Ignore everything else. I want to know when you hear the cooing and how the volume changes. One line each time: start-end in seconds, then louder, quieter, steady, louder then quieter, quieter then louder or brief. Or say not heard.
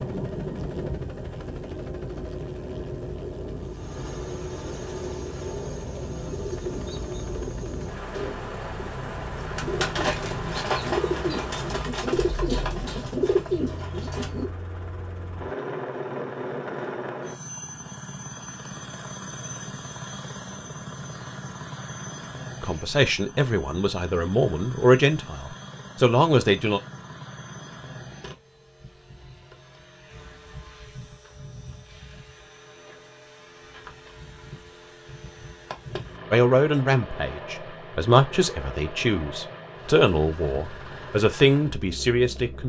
6.2-14.5 louder.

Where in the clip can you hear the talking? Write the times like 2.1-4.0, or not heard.
22.6-26.8, 36.3-42.6.